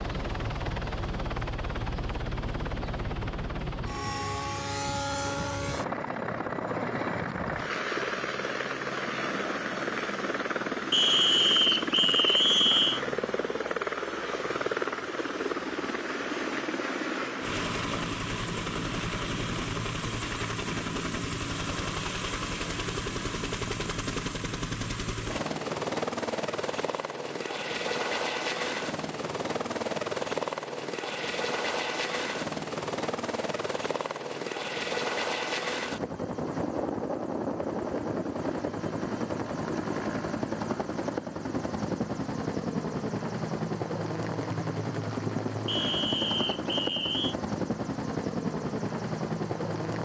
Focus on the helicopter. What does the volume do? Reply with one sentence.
The loudness of the helicopter stays about the same.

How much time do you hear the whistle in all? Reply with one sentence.
The whistle can be heard for 4 seconds in total.